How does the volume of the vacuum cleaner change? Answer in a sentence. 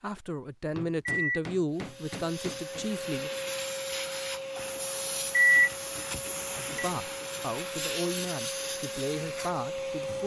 The volume of the vacuum cleaner stays about the same.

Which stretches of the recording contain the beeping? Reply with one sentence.
You can hear the beeping from 0.9 to 1.4 s and from 5.2 to 6.8 s.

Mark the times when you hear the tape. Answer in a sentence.
You can't hear the tape here.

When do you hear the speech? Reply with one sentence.
The speech can be heard from 0.0 to 3.3 s and from 6.7 to 10.2 s.